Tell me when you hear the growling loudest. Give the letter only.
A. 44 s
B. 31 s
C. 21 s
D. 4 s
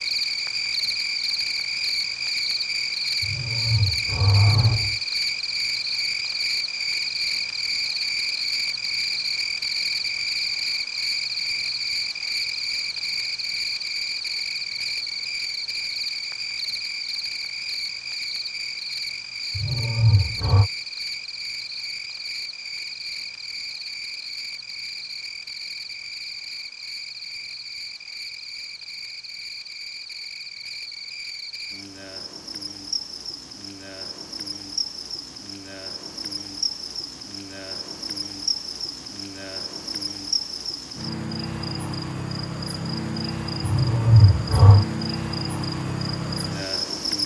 A.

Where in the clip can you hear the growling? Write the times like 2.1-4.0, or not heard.
3.2-5.0, 19.6-20.7, 43.6-44.9.